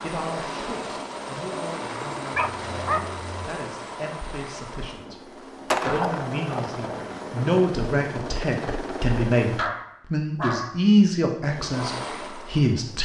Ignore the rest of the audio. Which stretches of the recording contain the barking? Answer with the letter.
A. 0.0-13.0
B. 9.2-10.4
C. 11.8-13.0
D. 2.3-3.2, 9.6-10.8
D.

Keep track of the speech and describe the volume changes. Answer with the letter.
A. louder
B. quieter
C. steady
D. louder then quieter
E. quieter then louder
A.